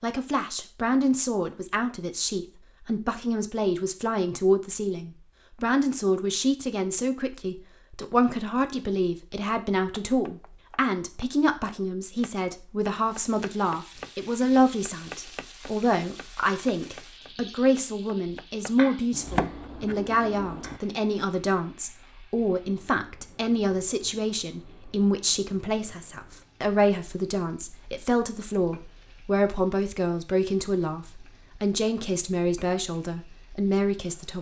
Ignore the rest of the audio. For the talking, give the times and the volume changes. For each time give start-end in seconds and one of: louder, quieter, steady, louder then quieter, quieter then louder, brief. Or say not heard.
0.0-34.3 steady.